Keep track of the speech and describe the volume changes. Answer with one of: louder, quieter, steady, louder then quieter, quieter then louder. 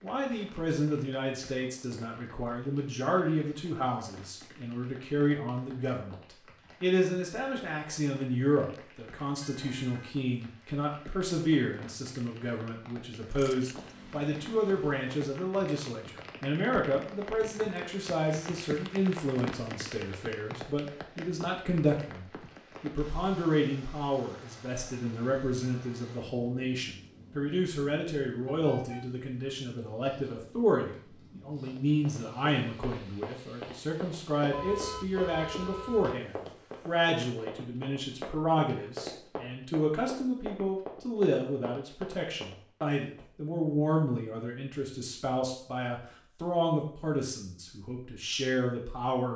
steady.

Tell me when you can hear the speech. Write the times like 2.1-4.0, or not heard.
0.0-49.3.